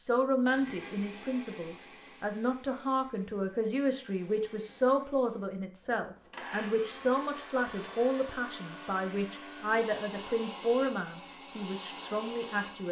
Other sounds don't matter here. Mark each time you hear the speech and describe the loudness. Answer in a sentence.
You can hear the speech from 0.0 to 12.8 s, at a steady volume.